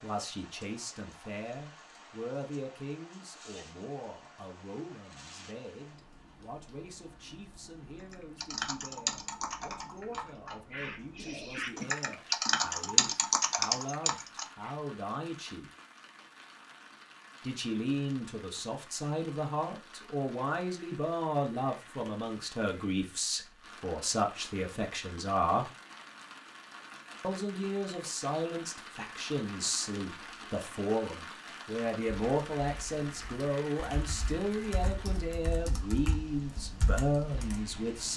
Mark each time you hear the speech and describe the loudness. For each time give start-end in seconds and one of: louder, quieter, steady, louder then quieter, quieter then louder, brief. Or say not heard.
0.0-15.7 quieter then louder
17.4-25.7 steady
27.2-38.1 steady.